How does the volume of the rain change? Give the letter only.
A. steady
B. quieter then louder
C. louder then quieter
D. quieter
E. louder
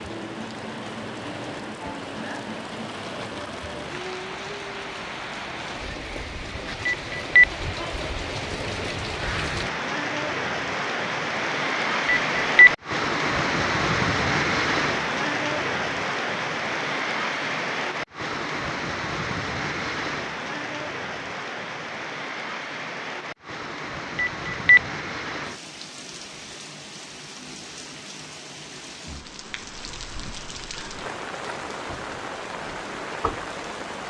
C.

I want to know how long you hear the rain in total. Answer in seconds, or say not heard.
34 s.